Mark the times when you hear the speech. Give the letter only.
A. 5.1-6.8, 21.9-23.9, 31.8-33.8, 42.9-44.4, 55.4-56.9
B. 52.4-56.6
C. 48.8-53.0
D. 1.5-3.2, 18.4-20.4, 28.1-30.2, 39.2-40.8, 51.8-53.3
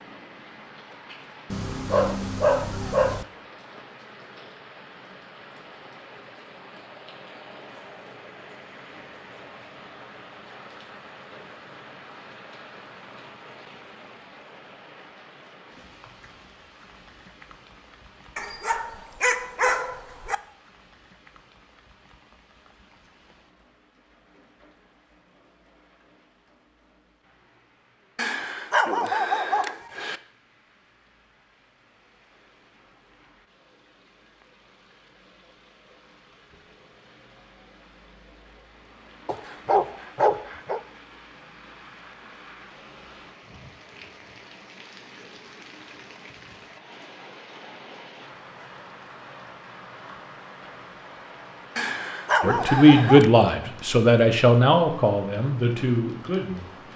B.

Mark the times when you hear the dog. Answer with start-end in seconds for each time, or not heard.
1.5-3.2, 18.4-20.4, 28.1-30.2, 39.2-40.8, 51.8-53.3.